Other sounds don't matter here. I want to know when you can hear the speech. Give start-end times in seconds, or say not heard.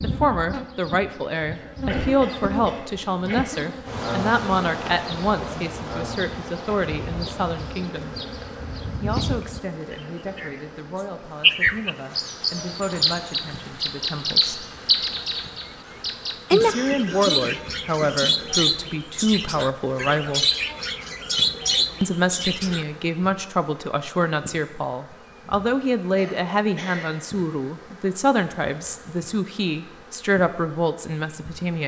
0.0-8.2, 9.0-14.7, 16.5-20.4, 22.0-31.8.